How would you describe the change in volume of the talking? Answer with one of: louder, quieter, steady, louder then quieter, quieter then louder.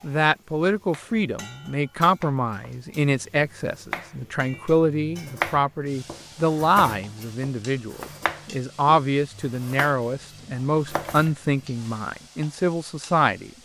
steady.